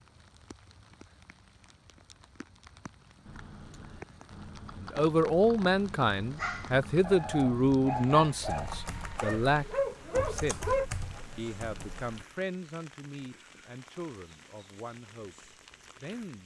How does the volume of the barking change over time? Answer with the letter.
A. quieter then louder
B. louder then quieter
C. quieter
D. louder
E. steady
D.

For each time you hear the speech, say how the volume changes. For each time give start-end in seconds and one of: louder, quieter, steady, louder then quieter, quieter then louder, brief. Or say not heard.
4.8-10.8 quieter then louder
11.3-16.4 quieter.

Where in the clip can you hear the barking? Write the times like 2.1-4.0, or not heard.
6.3-11.2.